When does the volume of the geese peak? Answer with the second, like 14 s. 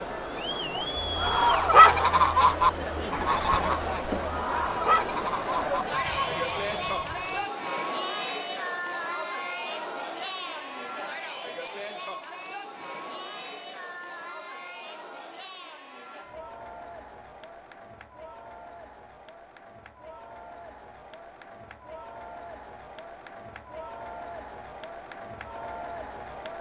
2 s.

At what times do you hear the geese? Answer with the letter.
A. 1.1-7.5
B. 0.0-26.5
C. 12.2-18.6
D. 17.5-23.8
A.